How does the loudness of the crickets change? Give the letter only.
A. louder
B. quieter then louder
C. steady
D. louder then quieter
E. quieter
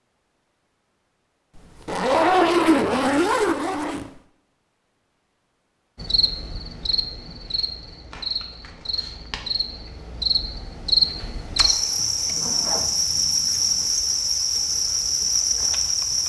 A.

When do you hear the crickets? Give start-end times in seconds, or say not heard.
6.0-16.2.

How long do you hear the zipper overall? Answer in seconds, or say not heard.
4 s.